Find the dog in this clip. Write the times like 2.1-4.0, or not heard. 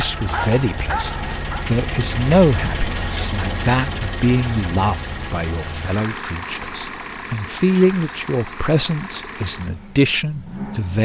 0.0-1.6.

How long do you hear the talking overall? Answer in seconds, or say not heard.
11 s.